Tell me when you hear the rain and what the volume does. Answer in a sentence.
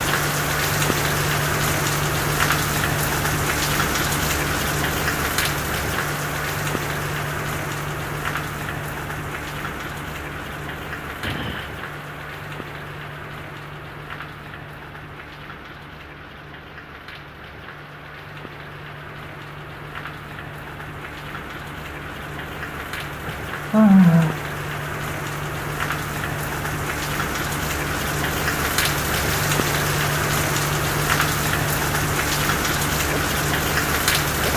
You can hear the rain from 0.0 to 34.5 s, getting quieter then louder.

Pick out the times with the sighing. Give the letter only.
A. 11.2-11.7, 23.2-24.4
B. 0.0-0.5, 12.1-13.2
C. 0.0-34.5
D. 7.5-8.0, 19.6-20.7
A.